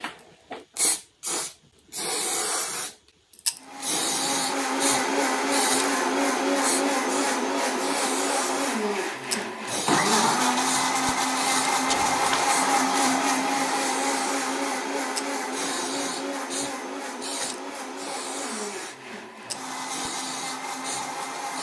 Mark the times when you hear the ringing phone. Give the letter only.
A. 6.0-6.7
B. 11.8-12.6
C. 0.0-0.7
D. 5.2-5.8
B.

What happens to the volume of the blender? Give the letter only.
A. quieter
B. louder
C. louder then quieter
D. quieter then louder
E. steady
A.